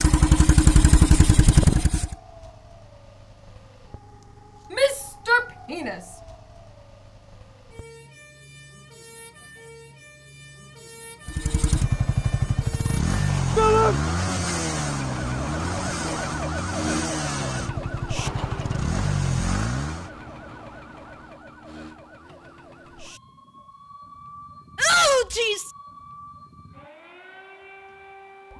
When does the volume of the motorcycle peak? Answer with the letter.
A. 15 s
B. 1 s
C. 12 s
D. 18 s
B.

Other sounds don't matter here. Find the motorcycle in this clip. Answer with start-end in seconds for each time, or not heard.
0.0-2.1, 11.2-20.1.